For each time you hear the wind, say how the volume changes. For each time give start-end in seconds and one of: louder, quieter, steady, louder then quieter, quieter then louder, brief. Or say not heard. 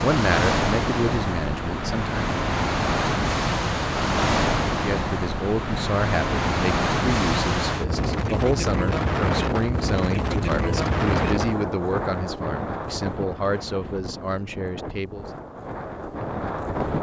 0.0-16.9 quieter.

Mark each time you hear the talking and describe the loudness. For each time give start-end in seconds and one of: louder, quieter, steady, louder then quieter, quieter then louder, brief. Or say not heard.
0.0-2.3 brief
4.7-15.2 steady.